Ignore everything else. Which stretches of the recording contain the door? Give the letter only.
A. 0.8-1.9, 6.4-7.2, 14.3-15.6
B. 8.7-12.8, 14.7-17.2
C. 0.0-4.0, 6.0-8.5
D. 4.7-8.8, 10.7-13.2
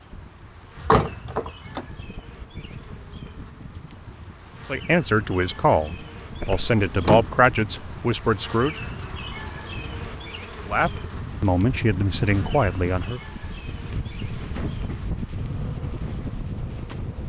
A.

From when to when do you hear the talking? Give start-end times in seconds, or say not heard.
4.7-8.8, 10.7-13.2.